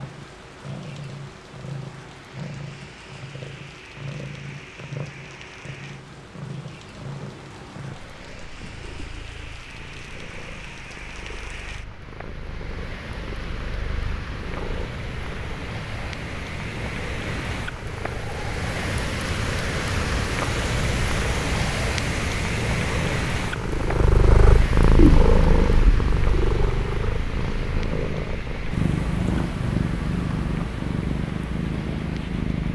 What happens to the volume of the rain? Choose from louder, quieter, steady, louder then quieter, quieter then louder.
louder then quieter.